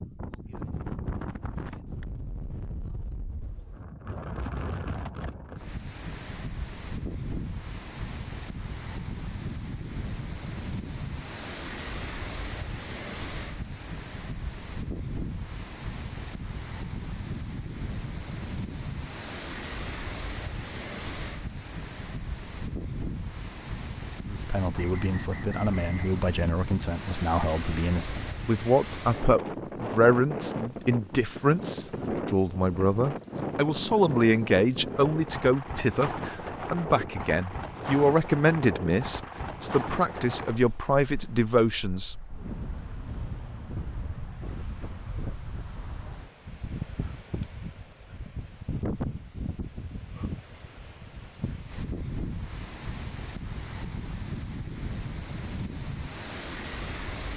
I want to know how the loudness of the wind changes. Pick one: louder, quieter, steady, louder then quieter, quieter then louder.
steady.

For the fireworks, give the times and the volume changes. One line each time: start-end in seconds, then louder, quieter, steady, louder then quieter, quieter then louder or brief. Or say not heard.
not heard.